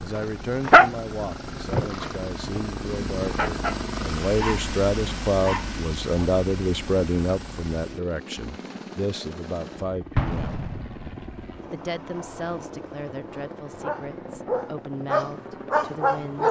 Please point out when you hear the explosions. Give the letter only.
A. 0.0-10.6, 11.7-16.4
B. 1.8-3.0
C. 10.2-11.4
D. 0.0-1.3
C.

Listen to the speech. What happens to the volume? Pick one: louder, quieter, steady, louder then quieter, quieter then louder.
louder then quieter.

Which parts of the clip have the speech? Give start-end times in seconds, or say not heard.
0.0-10.6, 11.7-16.4.